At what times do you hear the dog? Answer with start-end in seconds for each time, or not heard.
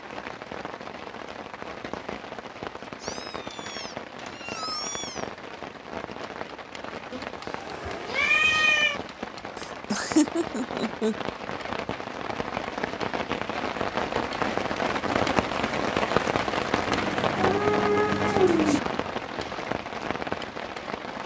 not heard.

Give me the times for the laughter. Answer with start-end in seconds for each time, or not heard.
9.6-11.2.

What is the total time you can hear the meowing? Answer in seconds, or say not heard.
6 s.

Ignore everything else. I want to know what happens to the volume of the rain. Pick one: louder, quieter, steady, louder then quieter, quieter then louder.
louder.